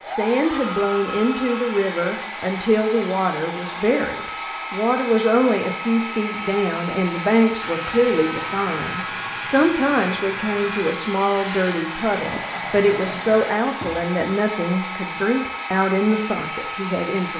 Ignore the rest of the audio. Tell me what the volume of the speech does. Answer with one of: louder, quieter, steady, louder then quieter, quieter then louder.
steady.